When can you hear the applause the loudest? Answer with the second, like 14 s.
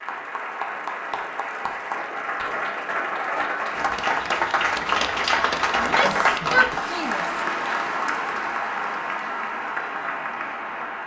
6 s.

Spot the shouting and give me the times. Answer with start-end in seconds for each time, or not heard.
5.8-7.4.